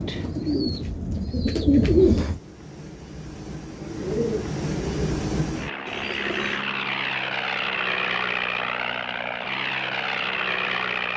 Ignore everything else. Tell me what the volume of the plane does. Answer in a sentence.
The loudness of the plane goes up.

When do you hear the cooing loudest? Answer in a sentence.
The loudest moment of the cooing is at 2 seconds.